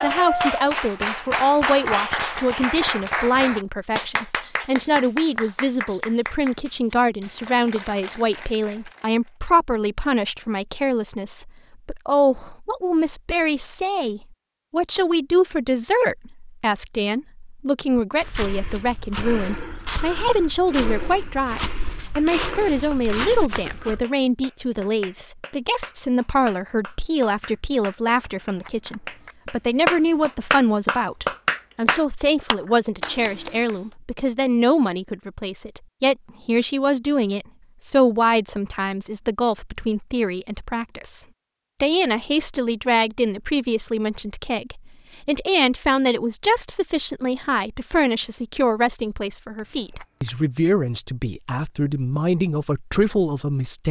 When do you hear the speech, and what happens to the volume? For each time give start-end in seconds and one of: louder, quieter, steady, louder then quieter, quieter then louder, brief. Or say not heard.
0.0-53.8 steady.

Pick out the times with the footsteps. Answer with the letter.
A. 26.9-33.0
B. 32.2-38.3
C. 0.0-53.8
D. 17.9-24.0
D.